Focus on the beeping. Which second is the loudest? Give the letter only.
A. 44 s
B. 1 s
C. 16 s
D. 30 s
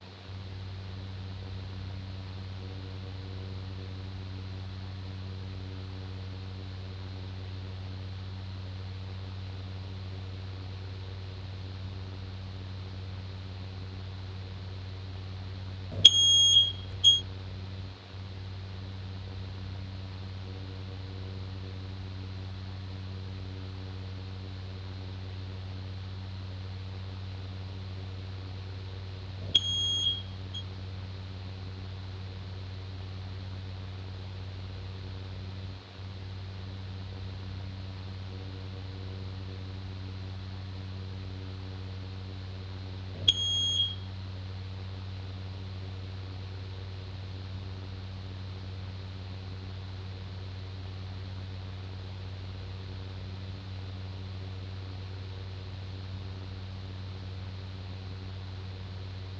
C.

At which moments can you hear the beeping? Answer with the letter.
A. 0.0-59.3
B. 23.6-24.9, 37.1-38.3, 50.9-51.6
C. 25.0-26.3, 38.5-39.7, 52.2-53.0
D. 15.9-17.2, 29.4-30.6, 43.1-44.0
D.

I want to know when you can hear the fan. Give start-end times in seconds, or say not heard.
0.0-59.3.